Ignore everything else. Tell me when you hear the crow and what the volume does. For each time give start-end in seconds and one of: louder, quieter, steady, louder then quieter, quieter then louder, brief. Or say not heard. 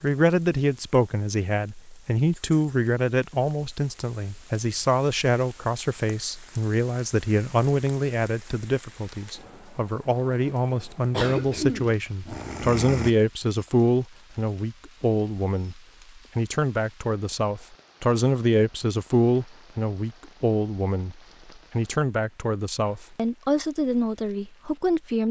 not heard.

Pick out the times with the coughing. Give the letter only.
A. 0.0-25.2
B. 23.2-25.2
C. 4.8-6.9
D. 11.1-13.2
D.